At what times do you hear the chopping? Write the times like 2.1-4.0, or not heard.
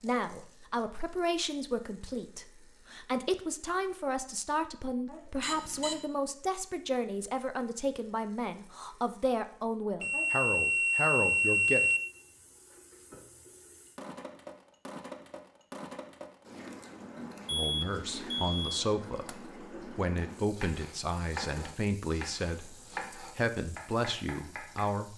20.6-24.9.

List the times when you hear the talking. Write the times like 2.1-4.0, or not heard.
0.0-11.9, 17.5-25.1.